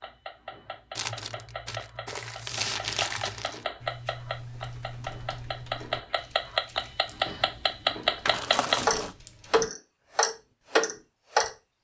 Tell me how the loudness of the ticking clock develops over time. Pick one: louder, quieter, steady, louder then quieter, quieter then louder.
louder.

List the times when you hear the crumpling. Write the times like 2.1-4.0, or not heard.
0.9-3.6, 8.2-9.2.